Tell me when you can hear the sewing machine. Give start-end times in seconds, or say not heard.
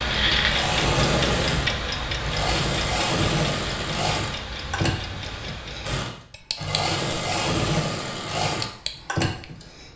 0.3-9.9.